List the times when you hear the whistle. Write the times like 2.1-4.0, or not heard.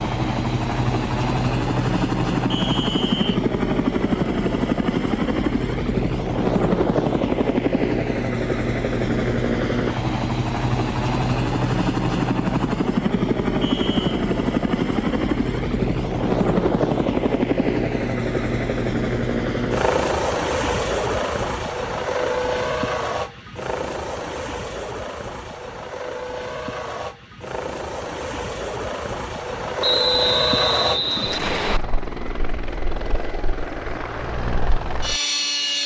2.5-3.4, 13.6-14.2, 29.8-31.8.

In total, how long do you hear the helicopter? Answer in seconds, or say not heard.
36 s.